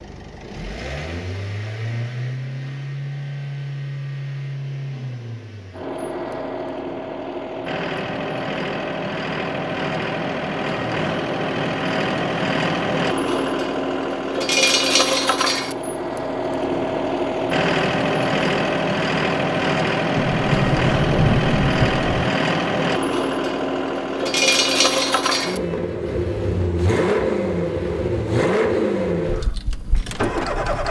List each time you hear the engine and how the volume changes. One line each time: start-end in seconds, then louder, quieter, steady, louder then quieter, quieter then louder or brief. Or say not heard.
0.0-30.8 louder.